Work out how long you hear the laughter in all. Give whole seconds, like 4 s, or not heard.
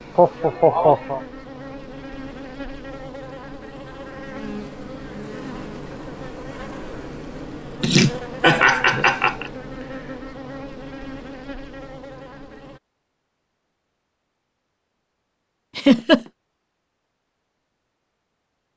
3 s.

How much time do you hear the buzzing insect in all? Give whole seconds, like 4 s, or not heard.
13 s.